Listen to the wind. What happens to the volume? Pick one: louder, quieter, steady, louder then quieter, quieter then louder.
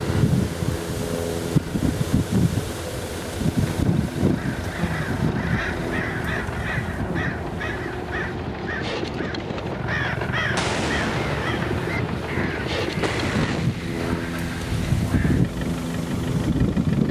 quieter then louder.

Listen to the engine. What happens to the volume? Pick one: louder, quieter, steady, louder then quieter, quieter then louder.
louder then quieter.